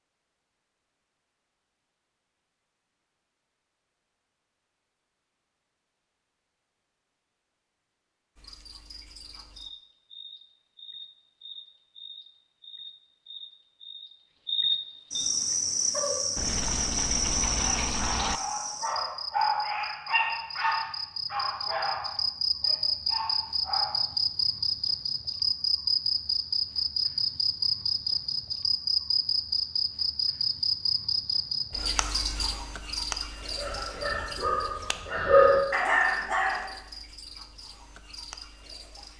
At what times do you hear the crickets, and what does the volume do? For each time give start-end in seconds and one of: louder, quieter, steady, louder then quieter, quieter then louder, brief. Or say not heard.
8.3-39.1 louder then quieter.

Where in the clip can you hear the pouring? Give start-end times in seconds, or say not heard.
16.4-18.4.